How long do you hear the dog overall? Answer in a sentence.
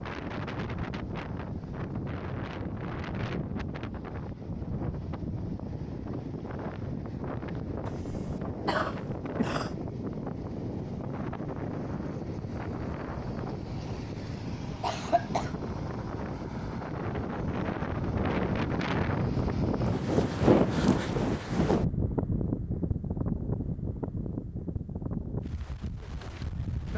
The dog can't be heard in this clip.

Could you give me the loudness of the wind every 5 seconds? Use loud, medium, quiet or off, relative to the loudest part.
medium, medium, medium, loud, loud, medium.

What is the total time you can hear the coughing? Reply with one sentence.
The coughing can be heard for 3 seconds in total.